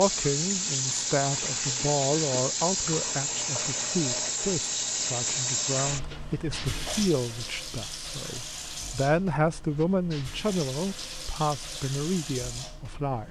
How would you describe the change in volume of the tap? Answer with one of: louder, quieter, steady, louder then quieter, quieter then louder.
quieter.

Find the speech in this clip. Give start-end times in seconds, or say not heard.
0.0-13.2.